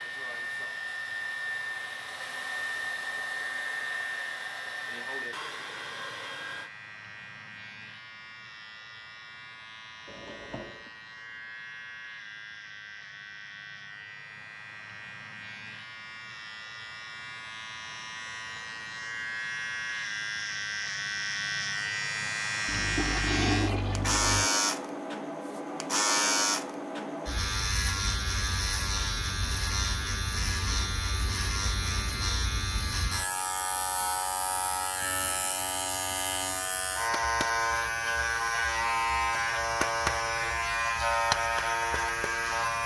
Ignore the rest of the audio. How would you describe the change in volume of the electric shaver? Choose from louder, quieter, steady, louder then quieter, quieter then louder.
louder.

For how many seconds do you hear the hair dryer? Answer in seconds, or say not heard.
7 s.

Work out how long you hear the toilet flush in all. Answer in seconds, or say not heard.
3 s.